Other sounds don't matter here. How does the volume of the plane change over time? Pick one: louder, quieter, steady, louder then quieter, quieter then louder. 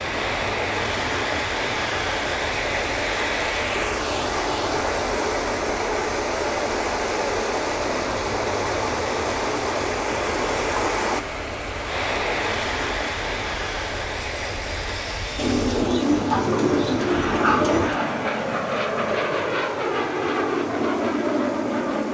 louder.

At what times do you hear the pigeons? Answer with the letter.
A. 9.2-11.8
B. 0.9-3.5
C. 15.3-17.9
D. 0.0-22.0
C.